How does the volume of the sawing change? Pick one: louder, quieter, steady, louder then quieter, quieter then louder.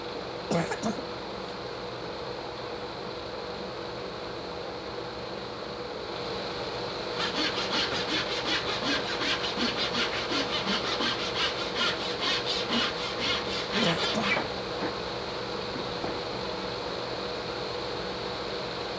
steady.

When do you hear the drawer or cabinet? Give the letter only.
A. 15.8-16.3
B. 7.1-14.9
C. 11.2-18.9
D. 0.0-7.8
A.